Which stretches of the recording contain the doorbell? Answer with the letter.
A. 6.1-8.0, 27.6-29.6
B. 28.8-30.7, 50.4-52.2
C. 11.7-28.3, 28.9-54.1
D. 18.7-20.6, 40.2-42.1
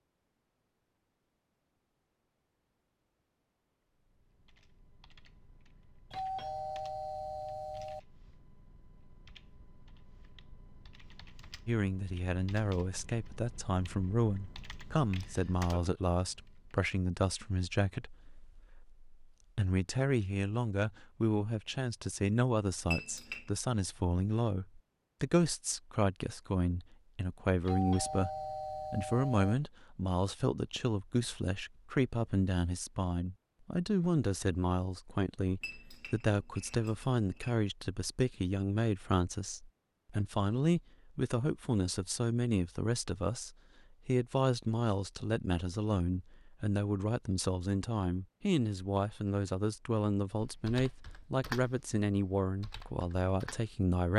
A.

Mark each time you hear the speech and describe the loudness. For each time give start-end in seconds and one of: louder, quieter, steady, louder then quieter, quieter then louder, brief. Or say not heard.
11.7-28.3 steady
28.9-54.1 steady.